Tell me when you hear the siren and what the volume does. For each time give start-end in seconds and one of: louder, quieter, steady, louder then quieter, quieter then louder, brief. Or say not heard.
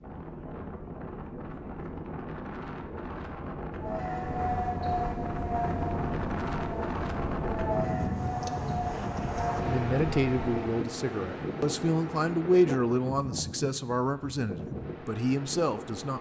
3.8-10.8 steady.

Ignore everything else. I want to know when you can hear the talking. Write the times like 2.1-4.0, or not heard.
9.7-16.1.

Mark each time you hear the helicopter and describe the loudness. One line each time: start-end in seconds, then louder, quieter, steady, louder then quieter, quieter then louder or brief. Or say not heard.
not heard.